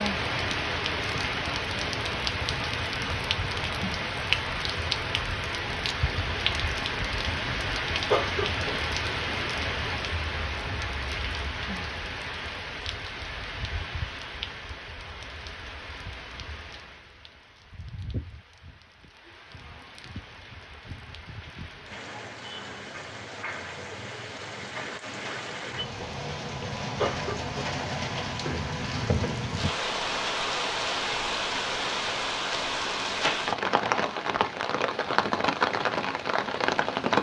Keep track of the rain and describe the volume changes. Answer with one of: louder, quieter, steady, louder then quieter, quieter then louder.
quieter then louder.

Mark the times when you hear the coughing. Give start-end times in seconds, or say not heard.
8.1-8.5, 26.9-27.6.